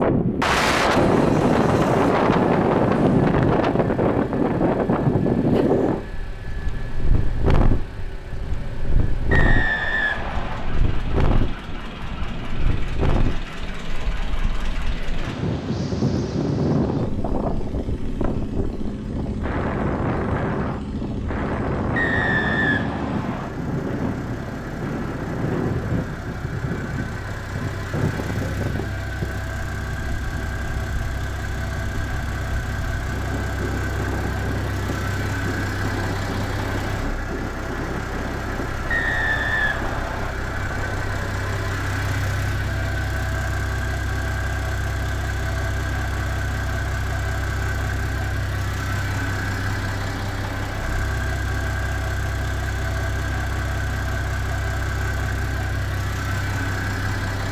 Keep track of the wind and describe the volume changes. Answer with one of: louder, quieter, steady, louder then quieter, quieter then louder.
quieter.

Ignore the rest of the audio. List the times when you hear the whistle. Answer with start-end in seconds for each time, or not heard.
9.3-10.8, 21.9-23.5, 38.9-40.4.